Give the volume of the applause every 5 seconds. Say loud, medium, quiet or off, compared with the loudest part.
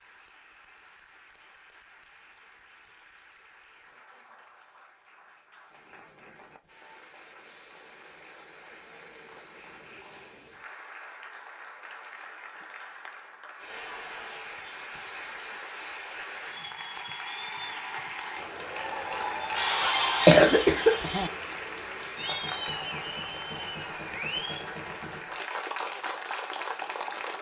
quiet, quiet, medium, loud, loud, loud.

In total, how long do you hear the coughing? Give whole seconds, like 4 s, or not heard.
2 s.